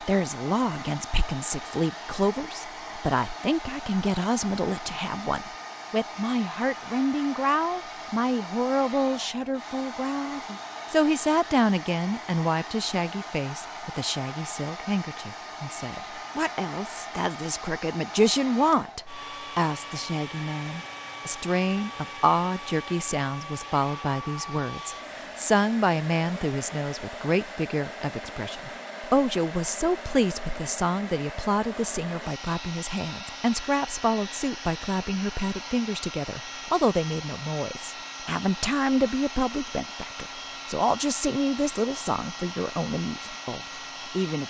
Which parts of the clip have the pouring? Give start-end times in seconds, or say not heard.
not heard.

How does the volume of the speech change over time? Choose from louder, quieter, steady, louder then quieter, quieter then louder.
steady.